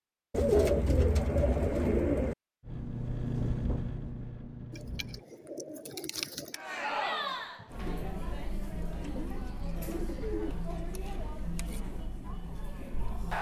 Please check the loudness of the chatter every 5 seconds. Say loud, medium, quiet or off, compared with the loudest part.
off, loud, loud.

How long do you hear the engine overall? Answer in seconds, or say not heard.
3 s.